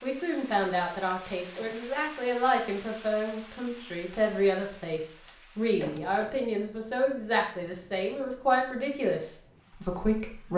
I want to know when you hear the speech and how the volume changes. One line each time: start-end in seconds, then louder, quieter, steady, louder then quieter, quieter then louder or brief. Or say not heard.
0.0-10.5 steady.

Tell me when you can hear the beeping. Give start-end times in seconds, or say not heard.
not heard.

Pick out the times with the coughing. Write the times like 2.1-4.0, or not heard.
1.6-2.0, 5.8-6.3.